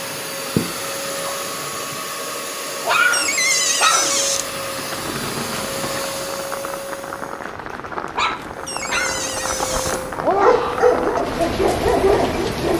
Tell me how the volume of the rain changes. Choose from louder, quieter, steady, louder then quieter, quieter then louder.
louder.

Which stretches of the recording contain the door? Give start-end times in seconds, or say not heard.
3.1-4.5, 8.7-10.1.